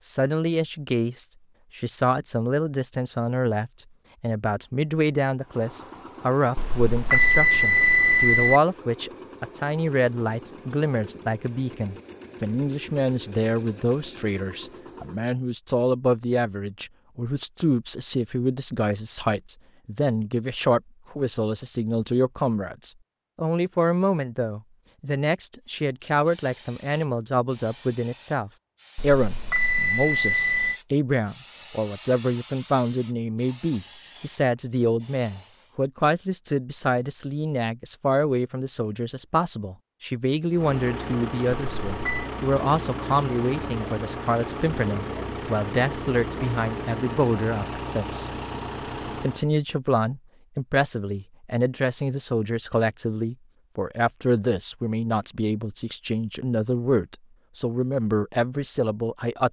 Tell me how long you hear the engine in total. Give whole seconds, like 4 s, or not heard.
19 s.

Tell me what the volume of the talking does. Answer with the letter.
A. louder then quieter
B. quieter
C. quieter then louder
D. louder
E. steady
E.